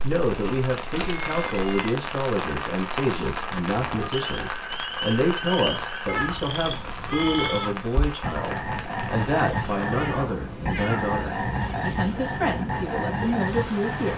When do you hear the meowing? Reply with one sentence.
You can hear the meowing from 0.4 to 1.9 s, from 6.0 to 7.8 s and from 9.8 to 11.2 s.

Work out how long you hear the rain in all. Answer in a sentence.
You can hear the rain for 14 seconds altogether.